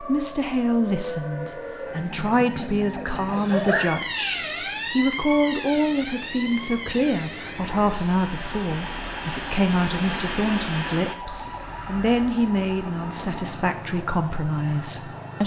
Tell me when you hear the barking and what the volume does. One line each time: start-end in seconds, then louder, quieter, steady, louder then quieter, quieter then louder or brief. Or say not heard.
not heard.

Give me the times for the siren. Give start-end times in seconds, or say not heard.
0.0-15.4.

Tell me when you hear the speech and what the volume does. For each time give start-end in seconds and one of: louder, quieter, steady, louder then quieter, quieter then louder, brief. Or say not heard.
0.0-15.4 steady.